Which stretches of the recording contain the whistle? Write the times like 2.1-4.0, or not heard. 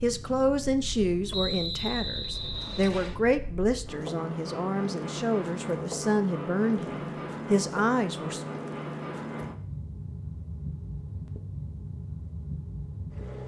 1.3-3.2.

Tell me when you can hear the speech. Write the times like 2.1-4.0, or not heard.
0.0-8.4.